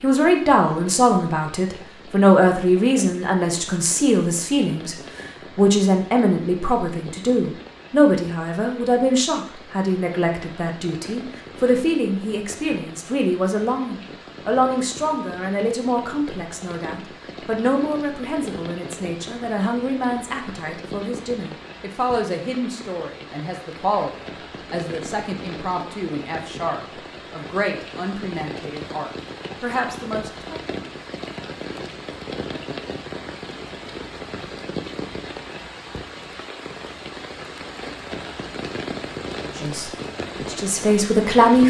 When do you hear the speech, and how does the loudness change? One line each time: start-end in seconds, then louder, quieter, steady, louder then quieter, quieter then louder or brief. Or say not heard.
0.0-30.6 quieter
39.5-41.6 brief.